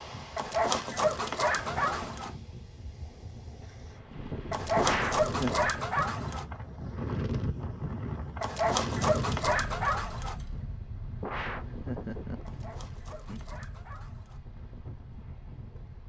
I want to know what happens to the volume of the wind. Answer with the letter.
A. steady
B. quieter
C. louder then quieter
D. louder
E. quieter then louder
C.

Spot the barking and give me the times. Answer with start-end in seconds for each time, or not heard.
0.3-2.3, 4.5-6.5, 8.4-10.3, 12.4-14.4.